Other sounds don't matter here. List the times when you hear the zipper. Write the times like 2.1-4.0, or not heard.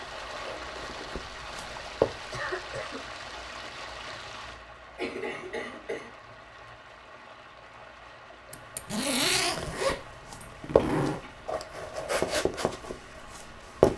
8.5-11.2.